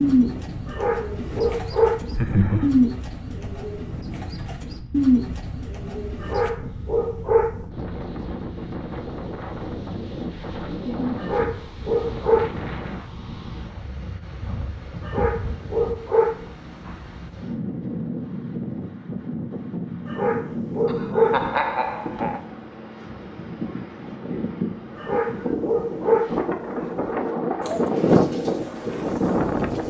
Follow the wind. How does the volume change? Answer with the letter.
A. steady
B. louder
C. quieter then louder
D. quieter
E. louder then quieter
B.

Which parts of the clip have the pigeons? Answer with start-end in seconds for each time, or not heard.
0.0-6.5, 27.6-29.8.